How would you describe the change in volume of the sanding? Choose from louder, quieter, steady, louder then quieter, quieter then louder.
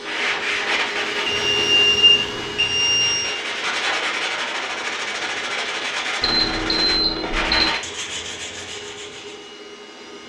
steady.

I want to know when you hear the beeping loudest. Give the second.
2 s.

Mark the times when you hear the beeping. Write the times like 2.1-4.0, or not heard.
1.2-3.4, 6.2-7.7.